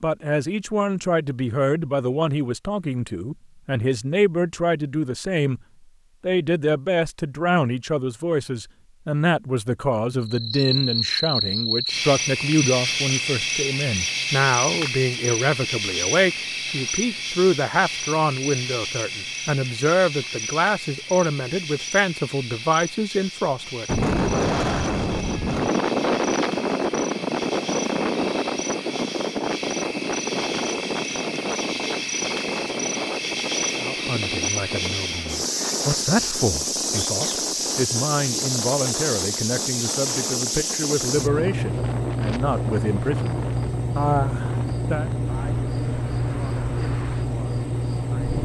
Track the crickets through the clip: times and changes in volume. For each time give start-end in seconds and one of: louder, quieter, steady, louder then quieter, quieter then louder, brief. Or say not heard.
10.2-48.4 quieter then louder.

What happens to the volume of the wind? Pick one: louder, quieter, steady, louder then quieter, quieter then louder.
quieter.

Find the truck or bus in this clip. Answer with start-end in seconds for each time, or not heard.
not heard.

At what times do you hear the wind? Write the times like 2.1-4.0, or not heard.
23.9-48.4.